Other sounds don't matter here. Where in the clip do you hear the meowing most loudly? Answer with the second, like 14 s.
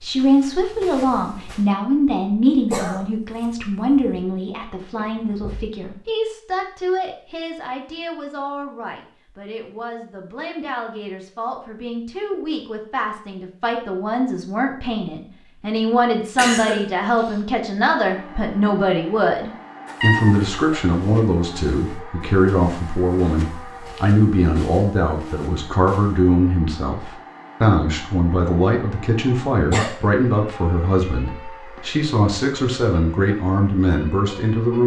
20 s.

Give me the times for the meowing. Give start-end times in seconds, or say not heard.
5.0-5.7, 19.9-20.6.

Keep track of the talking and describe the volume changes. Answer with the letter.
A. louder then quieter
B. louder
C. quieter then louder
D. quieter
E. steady
C.